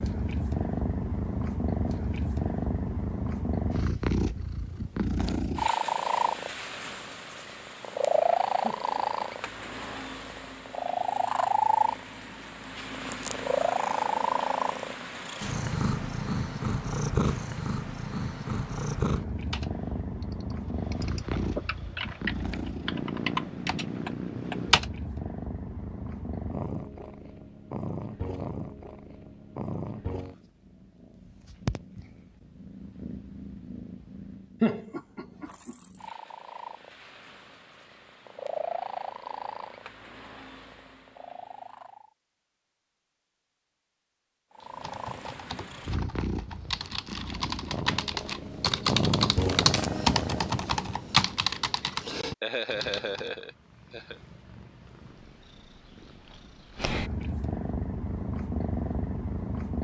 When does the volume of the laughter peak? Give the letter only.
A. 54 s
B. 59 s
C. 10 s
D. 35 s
D.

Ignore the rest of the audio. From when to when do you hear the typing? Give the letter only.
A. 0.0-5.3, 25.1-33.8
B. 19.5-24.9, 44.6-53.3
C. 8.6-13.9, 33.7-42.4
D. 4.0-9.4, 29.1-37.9
B.